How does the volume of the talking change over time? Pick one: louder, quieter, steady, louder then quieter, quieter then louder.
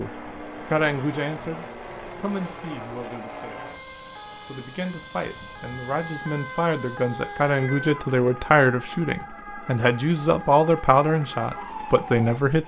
quieter then louder.